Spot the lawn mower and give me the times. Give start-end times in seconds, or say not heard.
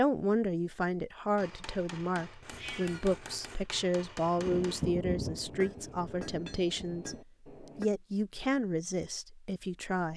not heard.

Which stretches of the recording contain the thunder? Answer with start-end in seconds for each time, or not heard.
4.3-7.2.